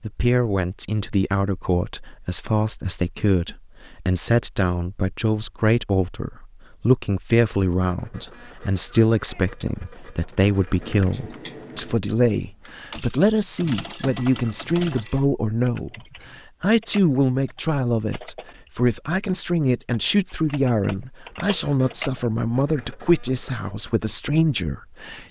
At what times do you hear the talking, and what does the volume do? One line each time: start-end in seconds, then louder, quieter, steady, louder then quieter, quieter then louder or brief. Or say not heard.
0.0-25.2 steady.